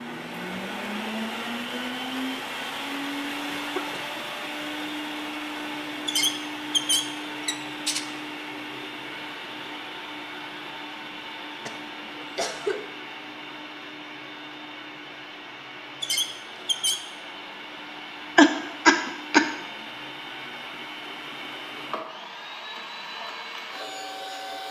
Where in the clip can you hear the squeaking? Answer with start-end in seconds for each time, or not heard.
6.0-8.1, 16.0-17.0.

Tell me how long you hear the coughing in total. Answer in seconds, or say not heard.
4 s.